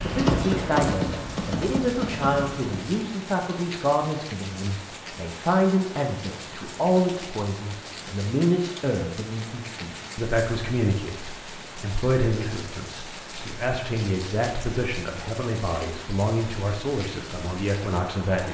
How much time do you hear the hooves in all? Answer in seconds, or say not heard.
3 s.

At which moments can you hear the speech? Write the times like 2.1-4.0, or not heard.
0.0-18.4.